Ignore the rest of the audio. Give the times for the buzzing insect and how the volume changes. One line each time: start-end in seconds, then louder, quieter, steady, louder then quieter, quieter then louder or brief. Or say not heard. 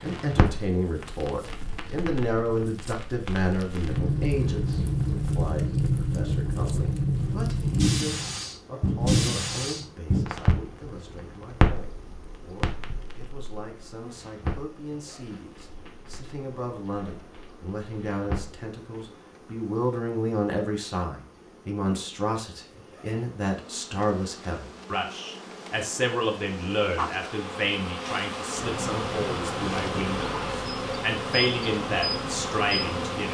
0.0-33.3 louder.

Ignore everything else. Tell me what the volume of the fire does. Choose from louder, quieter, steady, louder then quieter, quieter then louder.
louder then quieter.